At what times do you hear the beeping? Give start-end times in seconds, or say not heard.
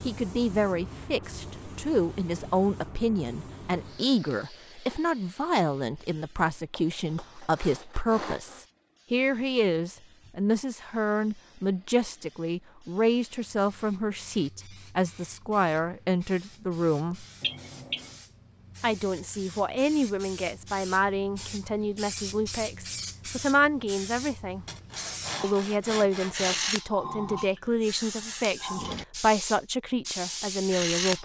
17.4-18.1.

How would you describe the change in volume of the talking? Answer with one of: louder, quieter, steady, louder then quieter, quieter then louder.
steady.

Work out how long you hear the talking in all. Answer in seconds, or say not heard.
29 s.